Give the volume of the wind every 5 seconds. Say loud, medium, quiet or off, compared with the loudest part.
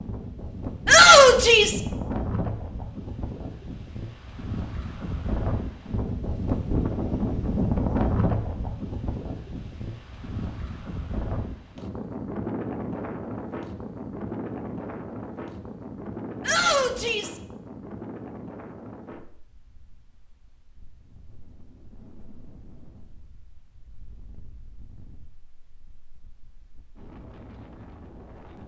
medium, loud, medium, medium, quiet, quiet.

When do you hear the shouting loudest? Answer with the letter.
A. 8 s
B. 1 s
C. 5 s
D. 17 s
B.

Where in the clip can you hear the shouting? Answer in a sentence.
You can hear the shouting from 0.8 to 1.8 s and from 16.4 to 17.4 s.